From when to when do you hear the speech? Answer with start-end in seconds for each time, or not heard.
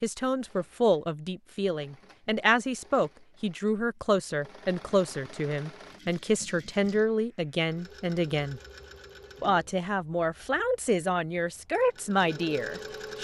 0.0-8.6, 9.4-13.2.